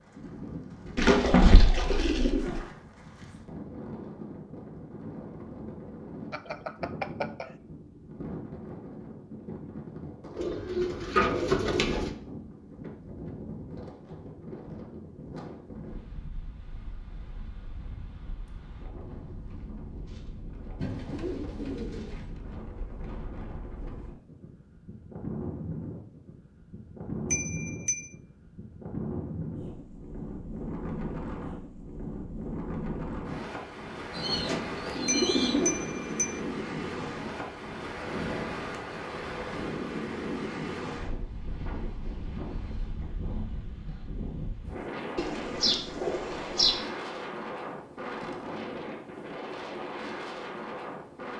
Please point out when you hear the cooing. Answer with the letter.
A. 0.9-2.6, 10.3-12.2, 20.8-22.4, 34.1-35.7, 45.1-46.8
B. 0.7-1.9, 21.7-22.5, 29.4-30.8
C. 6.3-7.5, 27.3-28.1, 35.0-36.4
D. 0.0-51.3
A.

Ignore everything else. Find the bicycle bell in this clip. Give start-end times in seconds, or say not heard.
6.3-7.5, 27.3-28.1, 35.0-36.4.